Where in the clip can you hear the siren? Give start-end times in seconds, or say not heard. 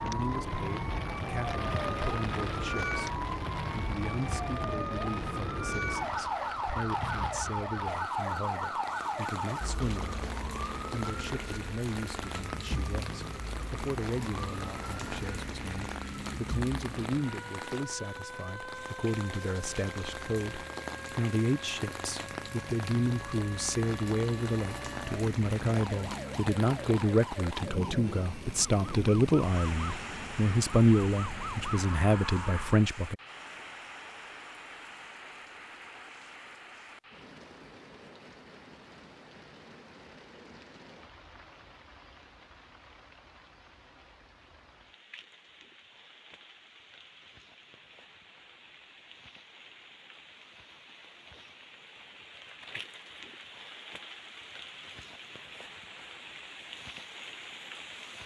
0.0-32.9.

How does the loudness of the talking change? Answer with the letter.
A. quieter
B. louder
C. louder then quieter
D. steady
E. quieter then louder
B.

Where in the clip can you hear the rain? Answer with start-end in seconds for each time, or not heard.
0.0-58.2.